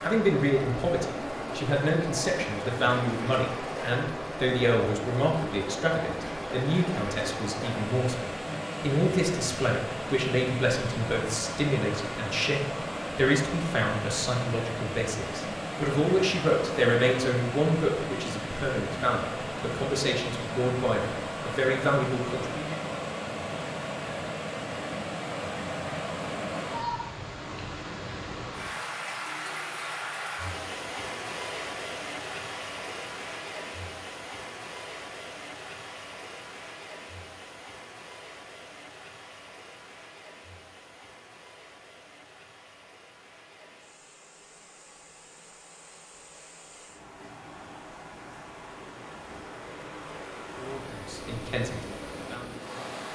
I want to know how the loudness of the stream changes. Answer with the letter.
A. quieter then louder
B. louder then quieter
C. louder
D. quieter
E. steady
D.